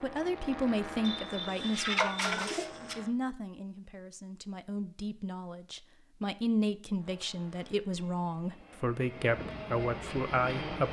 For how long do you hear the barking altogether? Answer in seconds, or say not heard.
not heard.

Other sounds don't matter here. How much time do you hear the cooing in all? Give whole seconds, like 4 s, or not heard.
2 s.